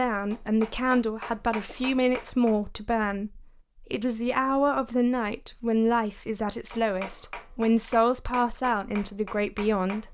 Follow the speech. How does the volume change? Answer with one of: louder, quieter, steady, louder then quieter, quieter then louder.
steady.